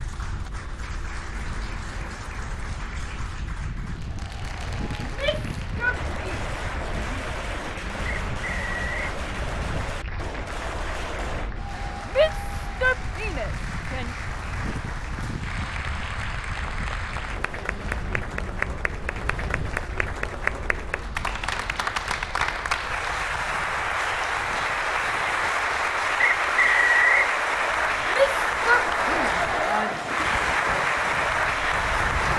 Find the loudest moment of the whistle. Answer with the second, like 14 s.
27 s.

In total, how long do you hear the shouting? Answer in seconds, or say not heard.
6 s.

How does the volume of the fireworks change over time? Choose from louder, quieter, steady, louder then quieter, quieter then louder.
steady.